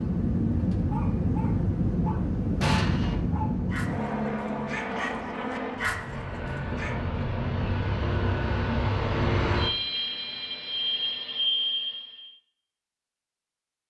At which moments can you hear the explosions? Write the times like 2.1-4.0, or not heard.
2.6-3.1.